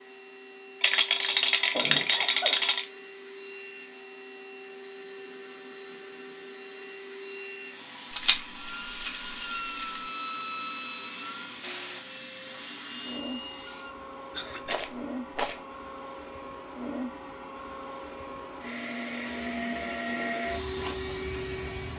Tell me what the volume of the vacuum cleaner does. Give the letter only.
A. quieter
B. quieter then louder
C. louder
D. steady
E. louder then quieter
C.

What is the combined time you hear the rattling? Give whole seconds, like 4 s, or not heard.
5 s.